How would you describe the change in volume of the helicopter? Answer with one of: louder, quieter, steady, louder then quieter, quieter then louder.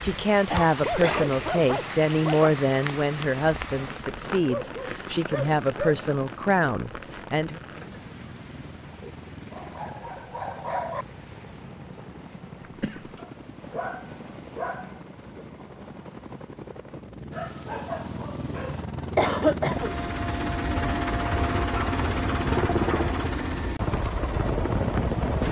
louder.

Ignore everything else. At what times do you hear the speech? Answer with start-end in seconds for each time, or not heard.
0.0-7.6.